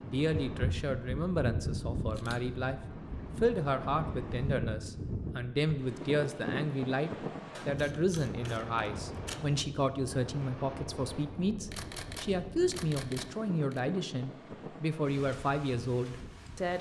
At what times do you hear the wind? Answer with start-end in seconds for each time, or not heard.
0.0-16.7.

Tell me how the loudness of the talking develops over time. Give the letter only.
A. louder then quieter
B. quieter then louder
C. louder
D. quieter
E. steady
E.